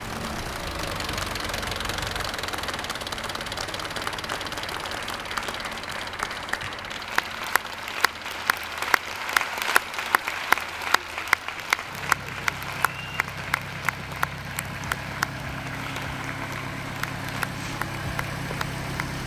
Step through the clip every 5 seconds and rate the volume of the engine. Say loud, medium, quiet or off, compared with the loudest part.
loud, medium, medium, loud.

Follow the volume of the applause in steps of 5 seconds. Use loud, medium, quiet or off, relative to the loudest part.
medium, loud, loud, medium.